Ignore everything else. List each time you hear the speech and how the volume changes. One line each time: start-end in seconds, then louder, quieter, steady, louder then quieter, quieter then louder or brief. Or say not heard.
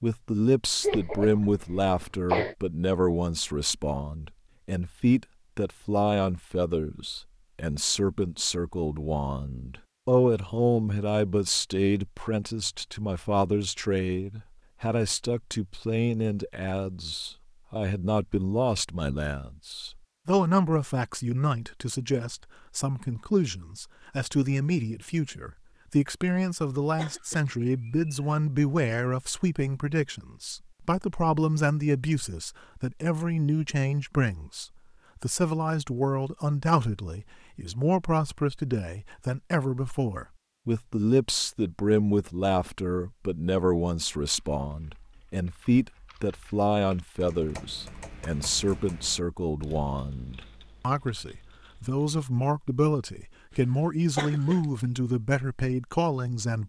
0.0-56.6 steady.